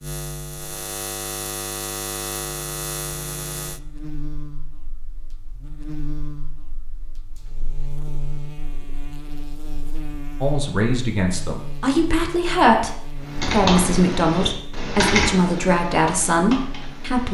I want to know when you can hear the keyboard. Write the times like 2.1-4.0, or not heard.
13.2-17.2.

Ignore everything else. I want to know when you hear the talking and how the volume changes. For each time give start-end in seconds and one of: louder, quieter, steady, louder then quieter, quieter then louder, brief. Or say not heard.
10.4-17.2 steady.